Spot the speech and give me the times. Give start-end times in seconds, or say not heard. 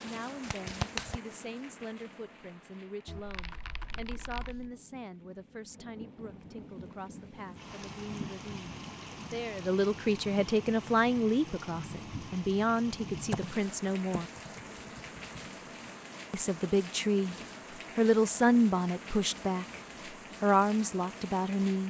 0.0-14.2, 16.3-17.4, 17.9-19.8, 20.4-21.8.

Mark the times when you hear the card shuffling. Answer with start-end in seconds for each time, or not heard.
0.4-1.2.